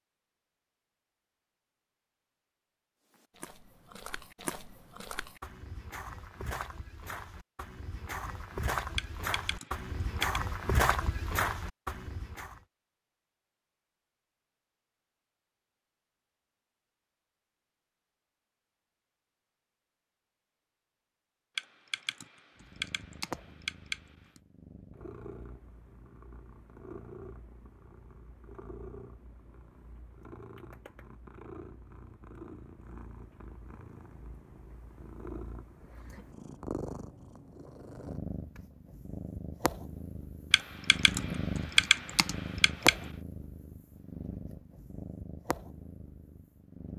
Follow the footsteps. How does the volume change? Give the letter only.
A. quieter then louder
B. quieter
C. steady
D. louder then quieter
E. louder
E.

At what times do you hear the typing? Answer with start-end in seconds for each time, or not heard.
8.9-10.4, 21.6-24.4, 40.5-43.0.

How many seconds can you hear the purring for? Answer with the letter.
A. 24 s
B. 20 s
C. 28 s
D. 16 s
A.